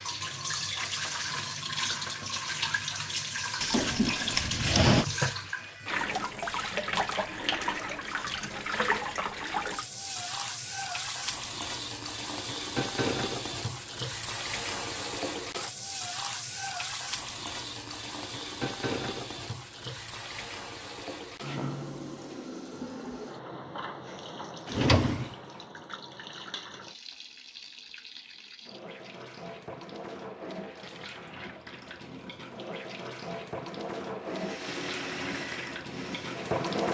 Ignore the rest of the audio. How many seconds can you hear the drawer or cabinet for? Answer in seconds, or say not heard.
2 s.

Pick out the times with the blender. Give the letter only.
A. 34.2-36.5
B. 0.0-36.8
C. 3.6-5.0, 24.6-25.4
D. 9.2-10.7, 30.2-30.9
A.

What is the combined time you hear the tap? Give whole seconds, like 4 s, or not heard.
37 s.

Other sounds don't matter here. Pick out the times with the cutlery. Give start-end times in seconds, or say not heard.
not heard.